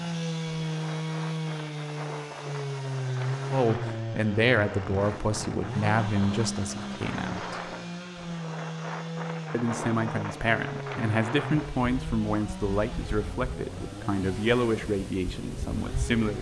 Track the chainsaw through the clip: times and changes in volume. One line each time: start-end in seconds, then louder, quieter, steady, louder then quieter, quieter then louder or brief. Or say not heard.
0.0-16.3 quieter.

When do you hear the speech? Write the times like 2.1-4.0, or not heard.
3.5-7.8, 9.5-16.3.